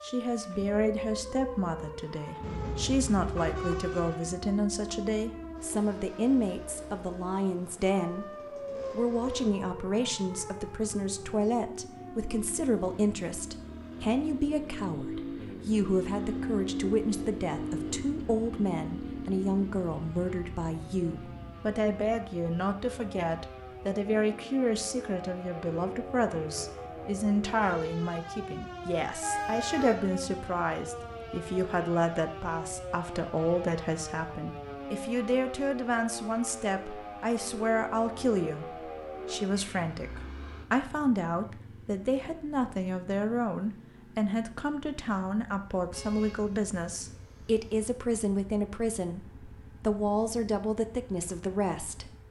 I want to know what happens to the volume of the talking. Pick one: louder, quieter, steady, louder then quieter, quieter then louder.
steady.